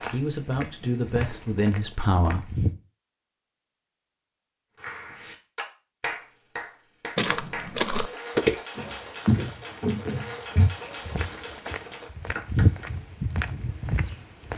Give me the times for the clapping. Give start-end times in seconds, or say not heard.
4.8-12.9.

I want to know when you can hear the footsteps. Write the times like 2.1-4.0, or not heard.
0.0-2.8, 7.2-14.5.